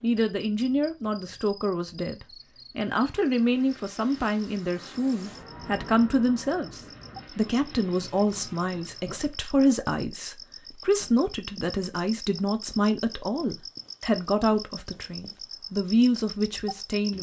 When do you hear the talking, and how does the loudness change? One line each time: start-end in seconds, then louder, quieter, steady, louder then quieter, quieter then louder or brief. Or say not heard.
0.0-17.1 steady.